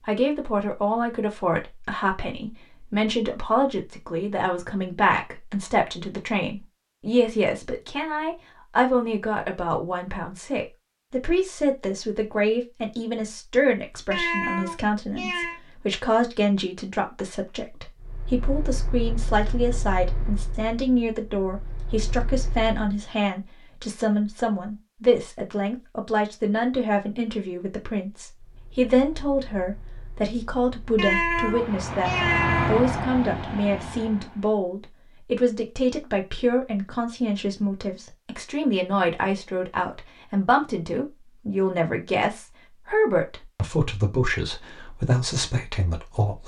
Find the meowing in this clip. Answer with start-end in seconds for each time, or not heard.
14.1-15.6, 30.9-32.9.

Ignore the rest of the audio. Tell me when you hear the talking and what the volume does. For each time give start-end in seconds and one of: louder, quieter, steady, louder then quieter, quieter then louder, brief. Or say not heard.
0.1-46.4 steady.